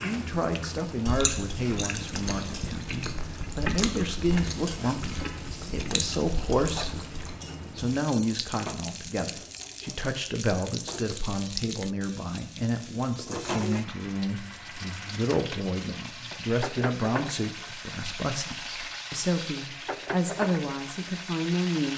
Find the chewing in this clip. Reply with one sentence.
The chewing can be heard from 0.0 to 7.4 s.